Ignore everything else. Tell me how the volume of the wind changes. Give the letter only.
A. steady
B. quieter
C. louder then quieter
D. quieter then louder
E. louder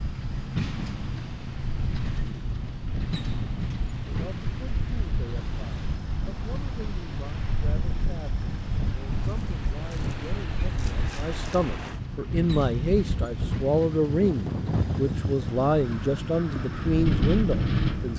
E.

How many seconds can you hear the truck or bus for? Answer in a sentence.
You can hear the truck or bus for 18 seconds altogether.